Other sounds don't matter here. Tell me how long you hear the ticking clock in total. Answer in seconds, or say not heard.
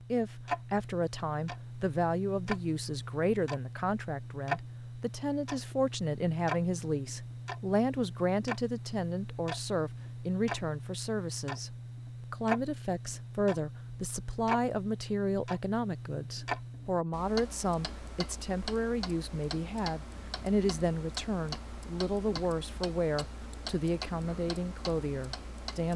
26 s.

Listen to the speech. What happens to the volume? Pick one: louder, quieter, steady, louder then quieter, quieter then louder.
steady.